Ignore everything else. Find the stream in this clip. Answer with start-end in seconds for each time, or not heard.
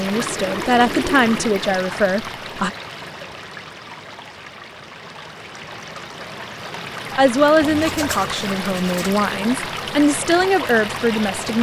0.0-11.5.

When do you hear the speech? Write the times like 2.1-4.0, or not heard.
0.0-2.7, 7.2-11.5.